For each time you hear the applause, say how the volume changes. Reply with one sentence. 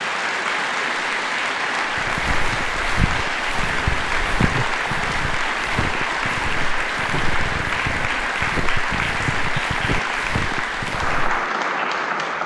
You can hear the applause from 0.0 to 12.4 s, at a steady volume.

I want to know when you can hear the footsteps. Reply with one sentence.
You can hear the footsteps from 1.9 to 11.4 s.